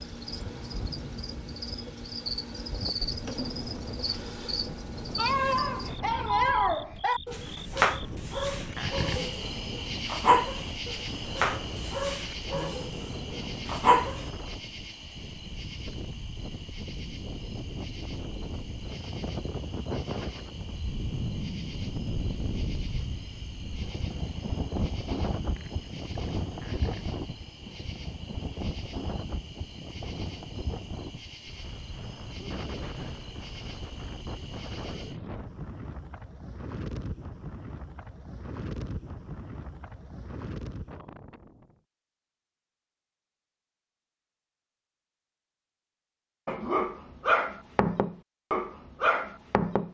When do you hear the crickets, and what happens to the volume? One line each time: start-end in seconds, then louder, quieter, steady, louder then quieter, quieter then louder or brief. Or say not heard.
0.0-35.2 quieter.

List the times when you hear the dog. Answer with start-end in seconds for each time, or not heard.
5.2-14.2, 46.5-49.8.